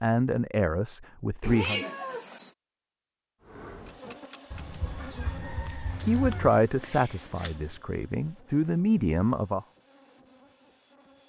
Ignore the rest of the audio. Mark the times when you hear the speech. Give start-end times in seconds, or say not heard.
0.0-1.8, 6.0-9.7.